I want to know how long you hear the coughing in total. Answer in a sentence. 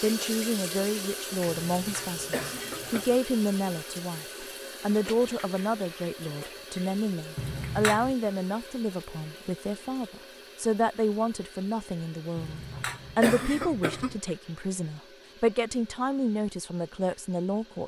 The coughing can be heard for 4 seconds in total.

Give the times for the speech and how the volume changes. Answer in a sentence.
The speech can be heard from 0.0 to 17.8 s, at a steady volume.